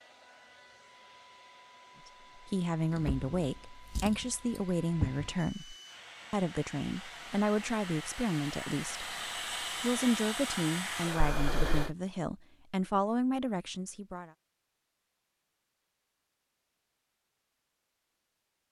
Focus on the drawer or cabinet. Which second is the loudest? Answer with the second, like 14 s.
5 s.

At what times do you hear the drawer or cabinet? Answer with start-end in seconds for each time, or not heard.
2.9-5.2, 11.3-11.9.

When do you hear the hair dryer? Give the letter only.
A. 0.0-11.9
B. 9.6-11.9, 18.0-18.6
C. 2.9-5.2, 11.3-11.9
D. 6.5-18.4
A.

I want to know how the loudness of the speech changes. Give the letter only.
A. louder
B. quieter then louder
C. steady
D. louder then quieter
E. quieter
C.